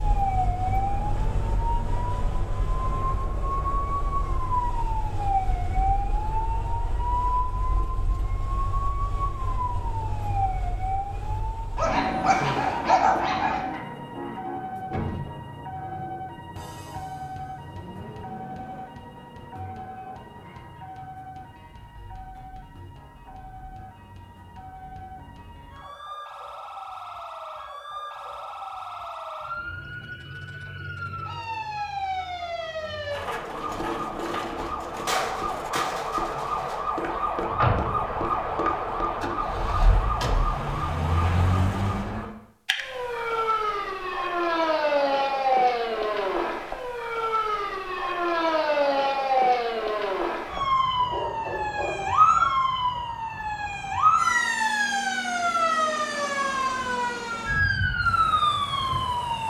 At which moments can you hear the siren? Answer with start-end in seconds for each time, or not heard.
0.0-59.4.